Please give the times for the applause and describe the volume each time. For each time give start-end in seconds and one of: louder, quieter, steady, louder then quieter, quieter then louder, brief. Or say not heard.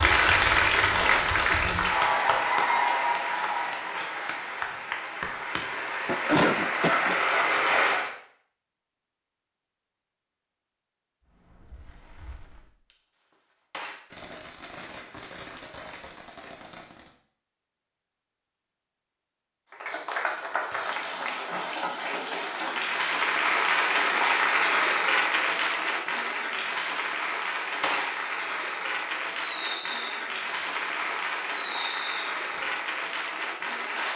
0.0-8.1 quieter then louder
19.7-34.1 louder then quieter.